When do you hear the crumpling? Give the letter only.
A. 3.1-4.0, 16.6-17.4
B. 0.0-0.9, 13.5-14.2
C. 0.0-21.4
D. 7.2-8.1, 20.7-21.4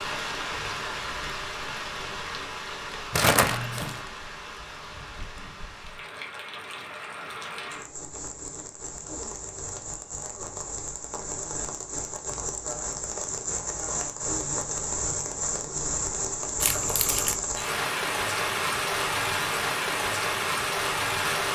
A.